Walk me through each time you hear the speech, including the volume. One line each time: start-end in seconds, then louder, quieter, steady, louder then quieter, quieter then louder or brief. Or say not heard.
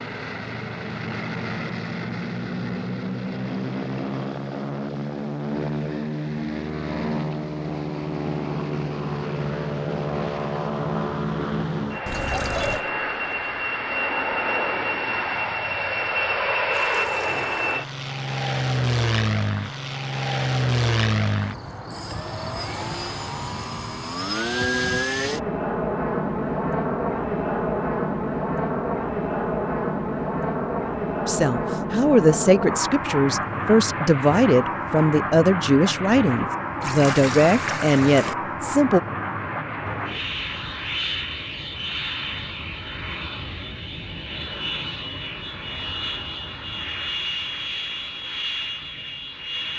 31.2-39.0 steady.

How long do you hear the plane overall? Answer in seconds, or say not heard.
50 s.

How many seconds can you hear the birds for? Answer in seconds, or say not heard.
not heard.